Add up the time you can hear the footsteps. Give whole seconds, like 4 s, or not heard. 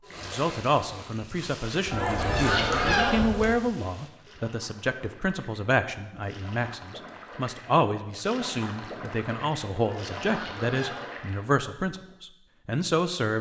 not heard.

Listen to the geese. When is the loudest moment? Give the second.
3 s.